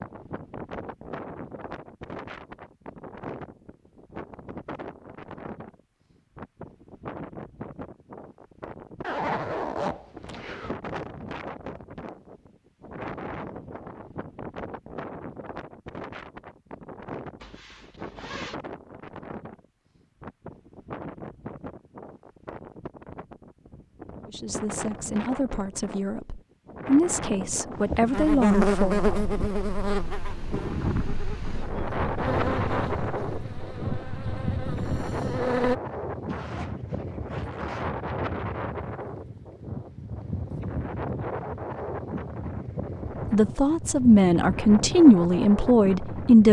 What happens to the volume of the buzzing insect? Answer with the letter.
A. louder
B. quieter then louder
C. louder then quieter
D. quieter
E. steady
D.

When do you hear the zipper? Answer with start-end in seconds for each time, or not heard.
9.0-10.8, 17.4-18.6, 36.2-37.9.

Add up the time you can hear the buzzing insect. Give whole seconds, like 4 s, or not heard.
8 s.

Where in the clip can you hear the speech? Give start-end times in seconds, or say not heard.
24.2-29.0, 43.3-46.4.